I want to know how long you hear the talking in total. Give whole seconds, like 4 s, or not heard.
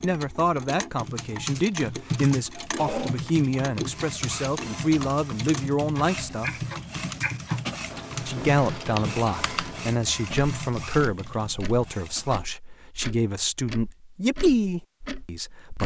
14 s.